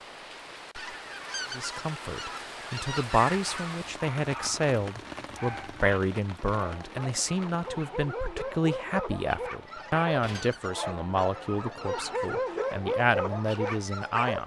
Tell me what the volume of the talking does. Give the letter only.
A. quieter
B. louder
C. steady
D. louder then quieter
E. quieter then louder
C.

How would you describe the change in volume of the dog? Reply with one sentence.
The loudness of the dog goes up.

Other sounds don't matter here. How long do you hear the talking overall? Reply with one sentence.
The talking can be heard for 13 seconds in total.